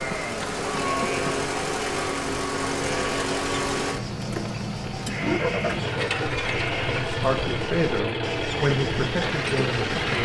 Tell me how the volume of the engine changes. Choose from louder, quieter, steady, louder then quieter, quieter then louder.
steady.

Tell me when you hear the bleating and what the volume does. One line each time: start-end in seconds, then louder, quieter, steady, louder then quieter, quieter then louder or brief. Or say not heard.
0.0-10.2 steady.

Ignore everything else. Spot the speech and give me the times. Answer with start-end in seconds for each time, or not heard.
7.1-10.2.